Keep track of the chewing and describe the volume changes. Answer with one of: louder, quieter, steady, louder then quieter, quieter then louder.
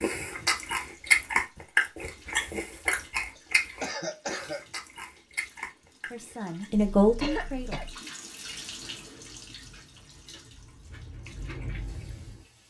quieter then louder.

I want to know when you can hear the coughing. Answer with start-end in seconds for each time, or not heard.
3.4-4.7, 6.7-8.0.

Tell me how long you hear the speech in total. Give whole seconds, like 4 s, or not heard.
2 s.